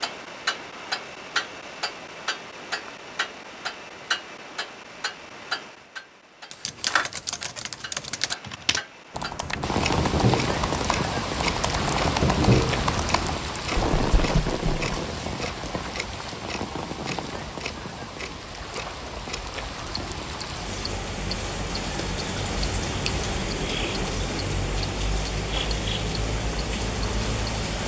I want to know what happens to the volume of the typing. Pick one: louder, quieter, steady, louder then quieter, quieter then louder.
louder then quieter.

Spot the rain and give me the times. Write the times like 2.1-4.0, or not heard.
9.6-27.8.